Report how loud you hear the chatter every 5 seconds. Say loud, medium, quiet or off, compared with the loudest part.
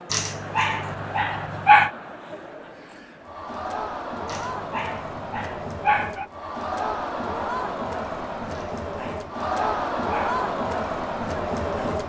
medium, loud, loud.